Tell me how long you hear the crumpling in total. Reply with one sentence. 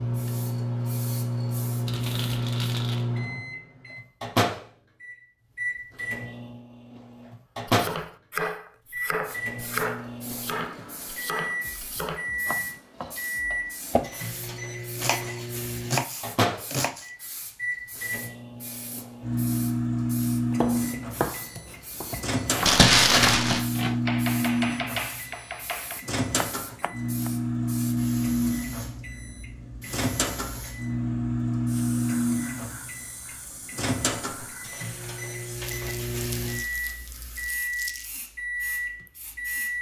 You can hear the crumpling for 5 seconds altogether.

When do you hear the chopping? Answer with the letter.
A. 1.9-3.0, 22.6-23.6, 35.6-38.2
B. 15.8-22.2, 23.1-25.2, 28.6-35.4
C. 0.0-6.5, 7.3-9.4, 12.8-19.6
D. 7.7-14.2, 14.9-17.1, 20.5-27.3
D.